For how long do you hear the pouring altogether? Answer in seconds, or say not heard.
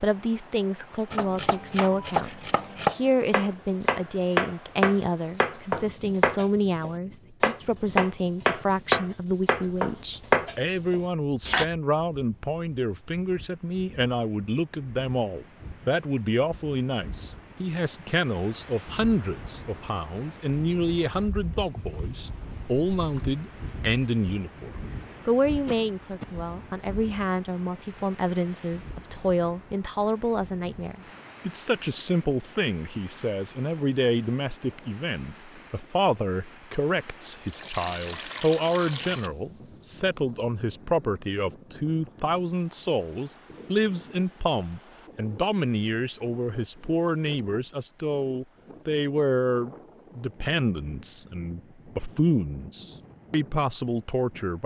2 s.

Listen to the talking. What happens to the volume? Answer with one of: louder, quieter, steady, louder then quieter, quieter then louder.
steady.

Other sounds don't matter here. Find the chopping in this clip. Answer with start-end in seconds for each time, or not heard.
1.1-11.7.